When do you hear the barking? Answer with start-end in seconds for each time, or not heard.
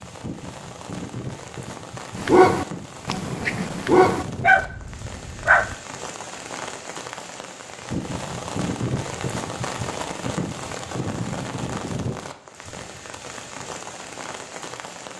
2.1-5.8.